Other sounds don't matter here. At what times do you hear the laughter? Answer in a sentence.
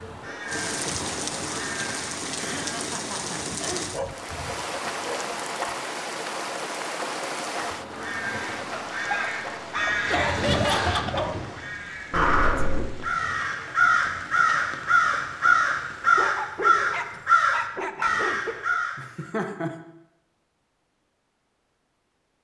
The laughter can be heard from 2.4 to 3.9 s, from 10.1 to 11.3 s and from 18.9 to 19.7 s.